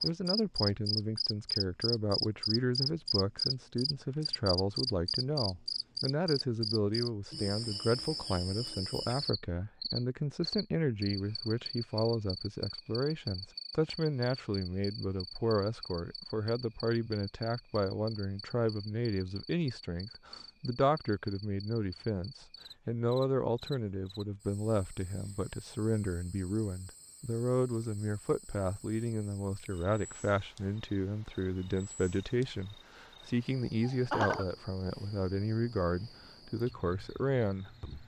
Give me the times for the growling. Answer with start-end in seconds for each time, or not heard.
not heard.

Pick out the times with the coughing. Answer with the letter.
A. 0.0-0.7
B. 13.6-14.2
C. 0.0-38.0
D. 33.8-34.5
D.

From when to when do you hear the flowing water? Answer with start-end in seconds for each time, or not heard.
not heard.